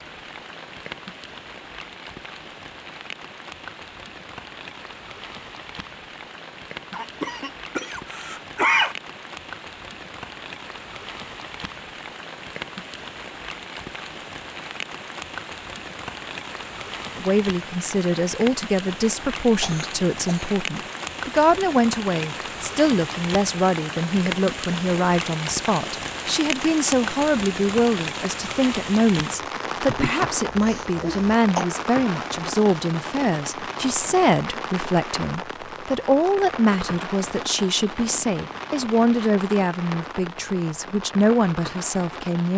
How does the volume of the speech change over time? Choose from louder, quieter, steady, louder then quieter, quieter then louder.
steady.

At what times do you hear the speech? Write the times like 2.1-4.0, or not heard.
17.1-42.5.